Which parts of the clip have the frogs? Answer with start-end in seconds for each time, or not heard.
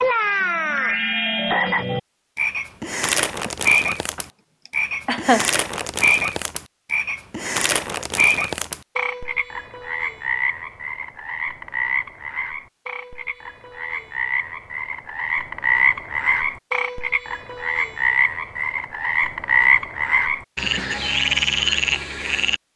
0.0-22.6.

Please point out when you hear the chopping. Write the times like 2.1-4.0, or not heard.
not heard.